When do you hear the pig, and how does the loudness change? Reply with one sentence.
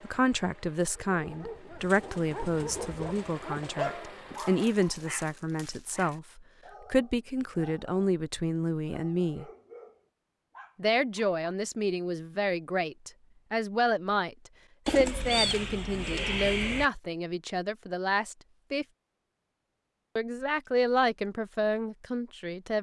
The pig can't be heard in this clip.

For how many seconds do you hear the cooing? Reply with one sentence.
You can hear the cooing for 4 seconds altogether.